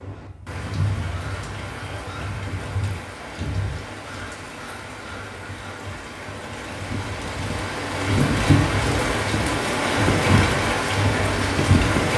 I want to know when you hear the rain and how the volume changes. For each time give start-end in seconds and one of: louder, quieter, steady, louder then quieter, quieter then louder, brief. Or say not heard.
0.0-12.1 louder.